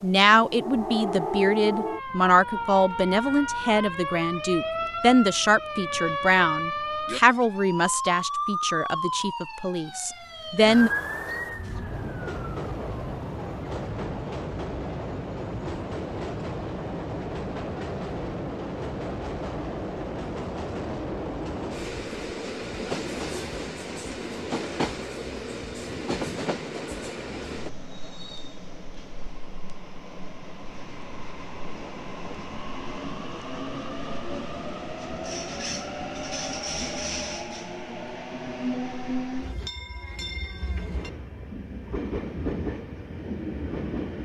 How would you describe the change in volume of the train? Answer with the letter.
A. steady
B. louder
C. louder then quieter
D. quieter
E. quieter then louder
A.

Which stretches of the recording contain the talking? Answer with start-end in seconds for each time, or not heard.
0.0-10.9.